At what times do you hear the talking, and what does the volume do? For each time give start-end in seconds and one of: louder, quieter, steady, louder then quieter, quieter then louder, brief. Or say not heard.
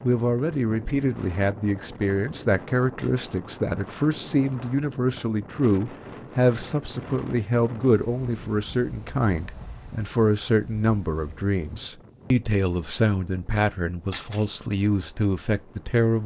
0.0-16.2 steady.